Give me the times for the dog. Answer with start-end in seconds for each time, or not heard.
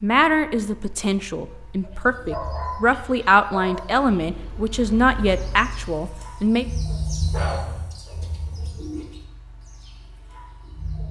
1.8-3.8, 6.9-8.2.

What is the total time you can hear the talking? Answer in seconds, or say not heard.
7 s.